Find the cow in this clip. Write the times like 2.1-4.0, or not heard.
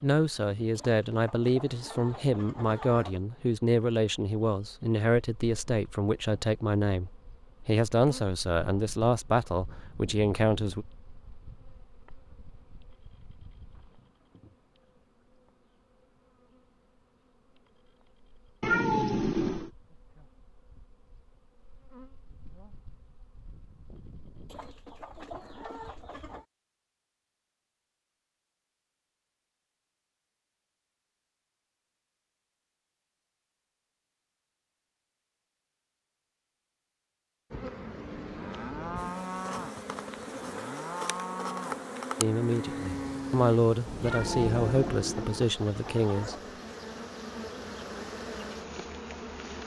37.9-45.1.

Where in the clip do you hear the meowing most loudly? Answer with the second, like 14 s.
19 s.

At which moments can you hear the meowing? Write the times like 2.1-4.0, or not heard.
18.6-19.7, 44.0-45.5.